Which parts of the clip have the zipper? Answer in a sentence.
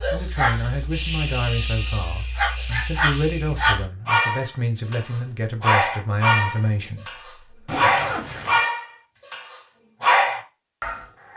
The zipper can be heard from 7.7 to 8.7 s.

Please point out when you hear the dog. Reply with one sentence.
The dog can be heard from 0.0 to 11.3 s.